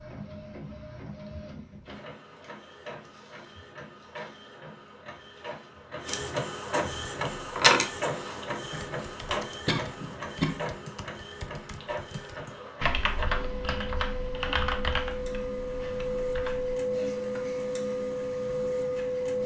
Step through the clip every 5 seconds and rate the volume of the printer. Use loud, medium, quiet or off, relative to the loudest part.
quiet, loud, medium, loud.